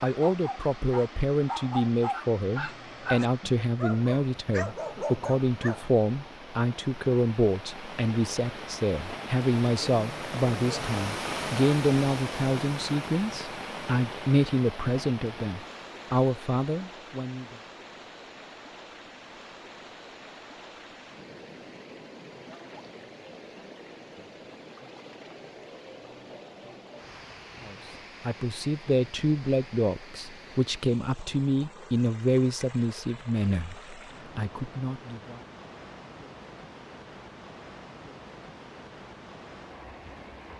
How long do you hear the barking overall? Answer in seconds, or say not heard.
6 s.